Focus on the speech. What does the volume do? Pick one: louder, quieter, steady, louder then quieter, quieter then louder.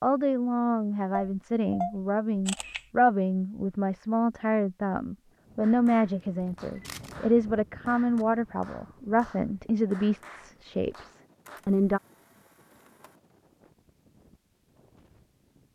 steady.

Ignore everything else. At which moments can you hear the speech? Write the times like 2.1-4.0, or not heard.
0.0-12.0.